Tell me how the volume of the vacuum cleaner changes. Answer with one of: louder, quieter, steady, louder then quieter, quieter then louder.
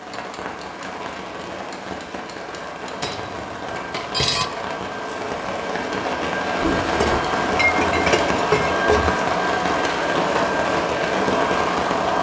louder.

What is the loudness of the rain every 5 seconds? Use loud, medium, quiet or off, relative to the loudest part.
medium, loud, loud.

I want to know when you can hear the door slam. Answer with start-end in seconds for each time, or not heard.
6.6-7.3.